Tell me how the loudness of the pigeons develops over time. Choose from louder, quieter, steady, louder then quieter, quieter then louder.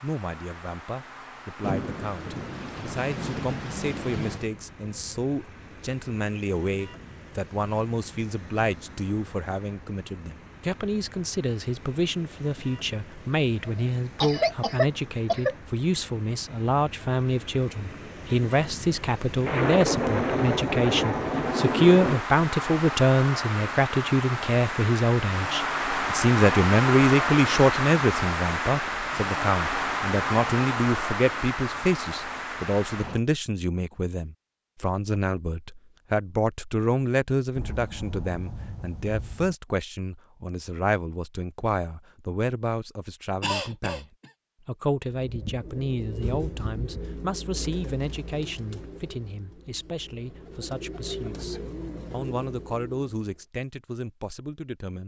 quieter then louder.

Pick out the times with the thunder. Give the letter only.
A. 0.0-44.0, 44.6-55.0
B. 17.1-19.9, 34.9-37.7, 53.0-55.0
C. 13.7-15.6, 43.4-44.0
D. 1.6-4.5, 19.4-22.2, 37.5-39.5
D.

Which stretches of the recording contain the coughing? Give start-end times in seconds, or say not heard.
13.7-15.6, 43.4-44.0.